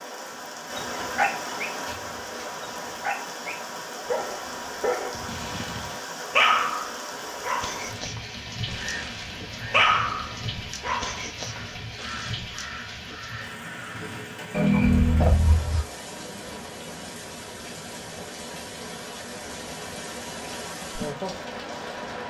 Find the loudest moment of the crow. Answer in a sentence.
The volume of the crow peaks at 15 seconds.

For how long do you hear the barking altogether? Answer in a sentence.
You can hear the barking for 12 seconds altogether.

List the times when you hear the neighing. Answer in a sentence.
You can hear the neighing from 5.1 to 6.0 s.